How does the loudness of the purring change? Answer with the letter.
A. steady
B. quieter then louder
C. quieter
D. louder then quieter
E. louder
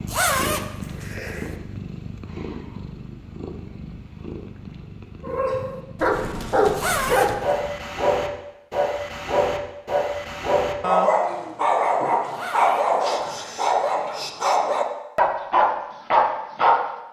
C.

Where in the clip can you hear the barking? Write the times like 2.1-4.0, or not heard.
5.2-16.8.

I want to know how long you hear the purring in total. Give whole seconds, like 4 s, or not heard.
8 s.